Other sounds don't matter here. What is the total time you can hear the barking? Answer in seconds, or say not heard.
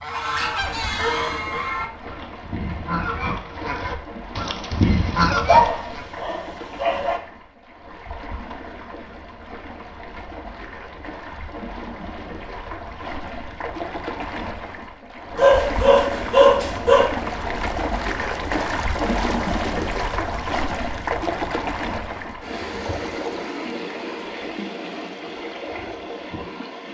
4 s.